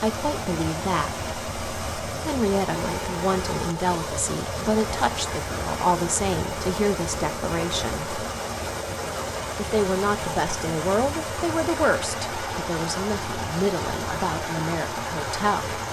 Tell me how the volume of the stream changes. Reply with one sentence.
The volume of the stream stays about the same.